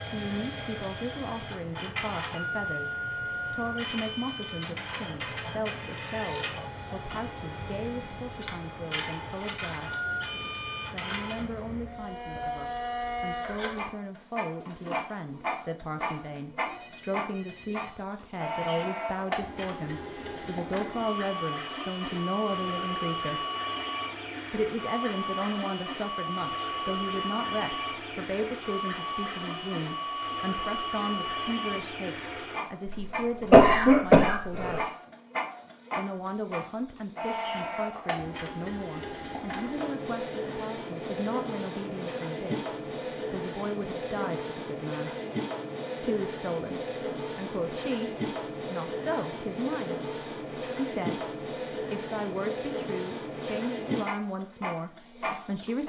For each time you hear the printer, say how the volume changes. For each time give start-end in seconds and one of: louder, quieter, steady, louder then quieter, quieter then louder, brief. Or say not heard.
0.0-55.8 steady.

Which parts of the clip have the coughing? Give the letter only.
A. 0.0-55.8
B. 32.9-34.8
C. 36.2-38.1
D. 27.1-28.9
B.